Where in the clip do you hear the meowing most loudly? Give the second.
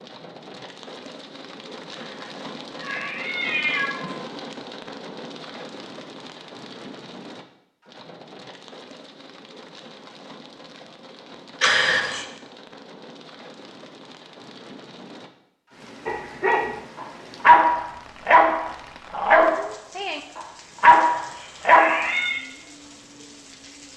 12 s.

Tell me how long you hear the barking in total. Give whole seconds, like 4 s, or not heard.
6 s.